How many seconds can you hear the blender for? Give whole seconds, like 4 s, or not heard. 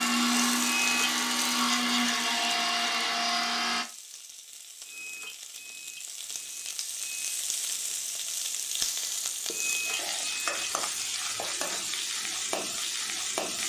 4 s.